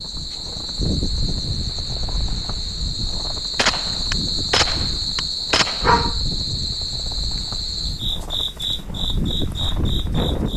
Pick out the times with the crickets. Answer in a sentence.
You can hear the crickets from 0.0 to 10.5 s.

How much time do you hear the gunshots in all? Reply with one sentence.
You can hear the gunshots for 2 seconds altogether.